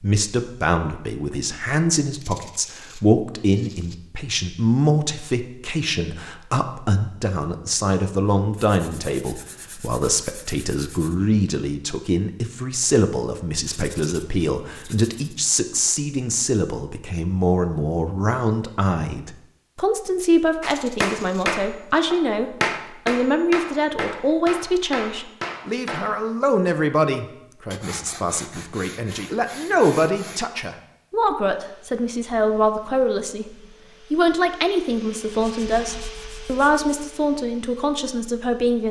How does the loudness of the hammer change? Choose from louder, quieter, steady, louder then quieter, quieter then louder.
quieter.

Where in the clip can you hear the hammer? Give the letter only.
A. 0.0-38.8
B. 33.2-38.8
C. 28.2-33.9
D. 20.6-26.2
D.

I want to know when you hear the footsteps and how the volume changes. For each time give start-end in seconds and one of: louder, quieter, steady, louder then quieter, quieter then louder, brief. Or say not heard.
not heard.